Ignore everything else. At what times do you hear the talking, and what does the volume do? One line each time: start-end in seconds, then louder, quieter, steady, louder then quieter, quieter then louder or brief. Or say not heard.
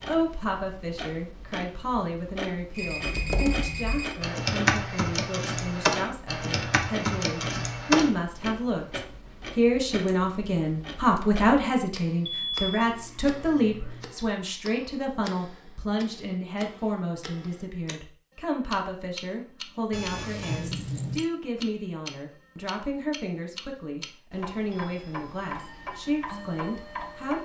0.1-27.3 louder then quieter.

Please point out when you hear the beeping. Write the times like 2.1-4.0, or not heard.
2.7-4.2, 12.2-14.1, 19.9-20.6.